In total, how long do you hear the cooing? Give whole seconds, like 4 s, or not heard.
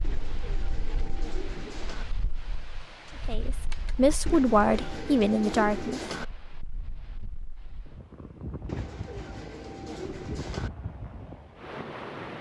6 s.